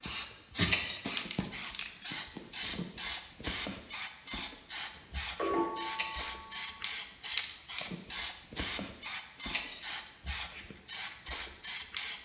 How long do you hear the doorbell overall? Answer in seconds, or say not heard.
2 s.